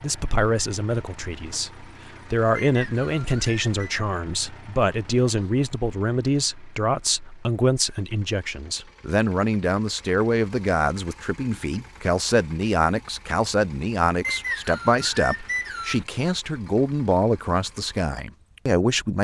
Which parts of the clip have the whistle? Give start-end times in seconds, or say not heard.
2.5-3.7, 14.2-16.1.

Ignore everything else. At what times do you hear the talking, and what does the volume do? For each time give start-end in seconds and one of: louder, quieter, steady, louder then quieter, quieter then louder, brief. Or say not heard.
0.0-19.1 steady.